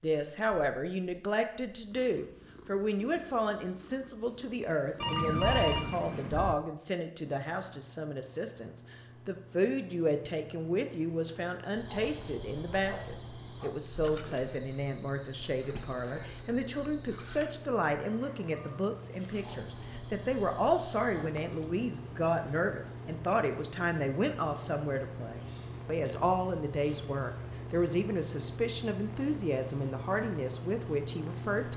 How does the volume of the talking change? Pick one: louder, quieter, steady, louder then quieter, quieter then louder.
steady.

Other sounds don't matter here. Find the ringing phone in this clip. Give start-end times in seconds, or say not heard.
5.0-6.5.